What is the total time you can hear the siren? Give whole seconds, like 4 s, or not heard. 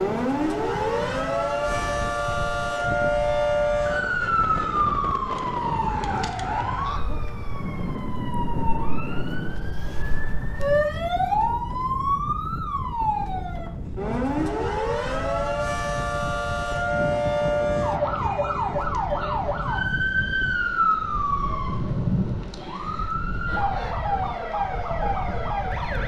26 s.